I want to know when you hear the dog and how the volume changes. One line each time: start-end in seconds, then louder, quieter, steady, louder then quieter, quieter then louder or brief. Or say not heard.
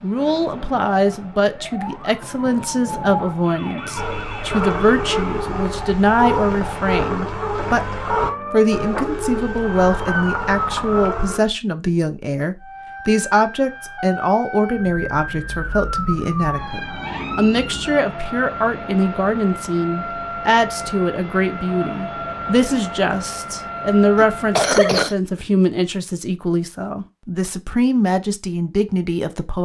4.0-11.4 quieter.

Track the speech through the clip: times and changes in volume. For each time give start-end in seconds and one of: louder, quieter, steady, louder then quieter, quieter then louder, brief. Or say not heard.
0.0-29.6 steady.